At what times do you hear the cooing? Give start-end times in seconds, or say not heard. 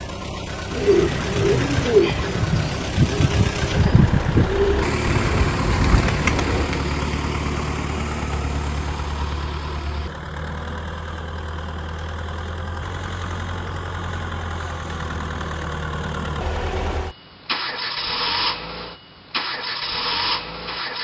0.7-6.8.